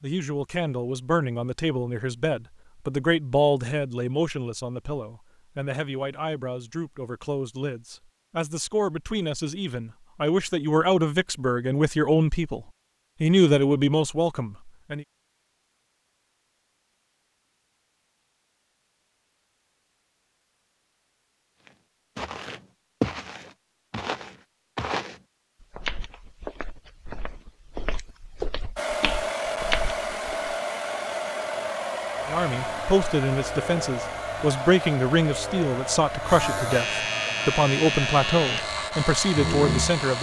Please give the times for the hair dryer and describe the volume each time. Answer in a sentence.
You can hear the hair dryer from 28.8 to 40.1 s, getting quieter.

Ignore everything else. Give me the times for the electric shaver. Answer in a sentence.
You can hear the electric shaver from 32.0 to 40.1 s.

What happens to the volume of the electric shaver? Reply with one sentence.
The loudness of the electric shaver goes up.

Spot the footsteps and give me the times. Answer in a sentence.
You can hear the footsteps from 21.6 to 30.6 s.